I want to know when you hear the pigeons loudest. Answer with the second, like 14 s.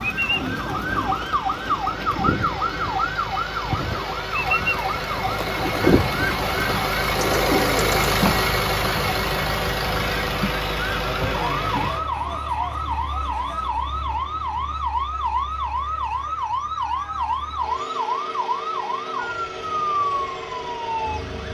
6 s.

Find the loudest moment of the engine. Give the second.
8 s.